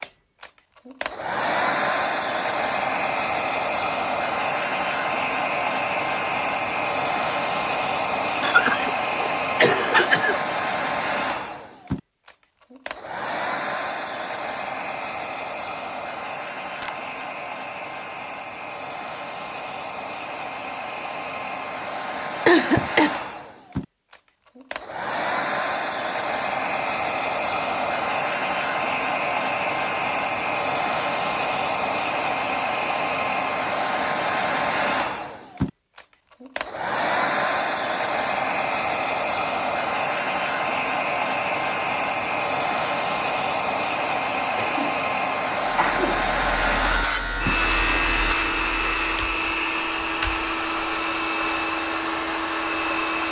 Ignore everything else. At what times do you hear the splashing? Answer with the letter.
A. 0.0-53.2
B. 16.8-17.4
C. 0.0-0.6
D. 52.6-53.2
B.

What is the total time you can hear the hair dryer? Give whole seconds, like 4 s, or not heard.
53 s.